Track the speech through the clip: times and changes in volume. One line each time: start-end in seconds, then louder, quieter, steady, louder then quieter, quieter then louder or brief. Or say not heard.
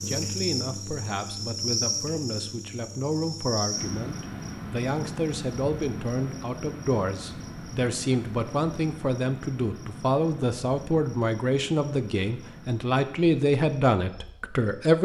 0.1-15.0 louder.